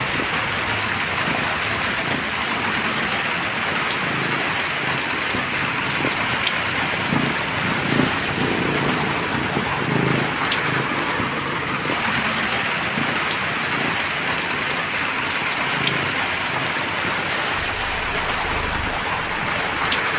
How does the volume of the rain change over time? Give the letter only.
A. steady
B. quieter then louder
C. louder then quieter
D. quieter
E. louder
A.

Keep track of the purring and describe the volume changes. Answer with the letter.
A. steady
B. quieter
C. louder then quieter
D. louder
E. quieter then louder
C.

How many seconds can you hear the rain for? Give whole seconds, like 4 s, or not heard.
20 s.